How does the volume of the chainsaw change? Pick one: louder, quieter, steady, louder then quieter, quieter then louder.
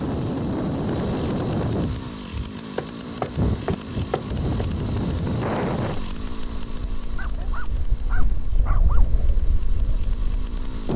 quieter.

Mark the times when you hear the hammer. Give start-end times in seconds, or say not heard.
2.6-4.7.